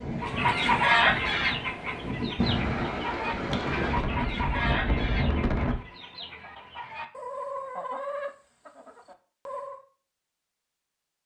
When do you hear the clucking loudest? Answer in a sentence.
The loudest moment of the clucking is at 1 second.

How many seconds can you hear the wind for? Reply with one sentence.
The wind can be heard for 6 seconds in total.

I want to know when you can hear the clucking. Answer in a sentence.
You can hear the clucking from 0.2 to 9.8 s.